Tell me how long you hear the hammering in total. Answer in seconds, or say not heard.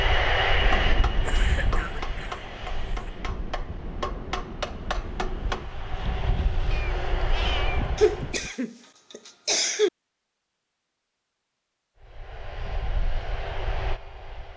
5 s.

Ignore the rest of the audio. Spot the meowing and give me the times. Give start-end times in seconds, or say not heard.
6.7-8.5.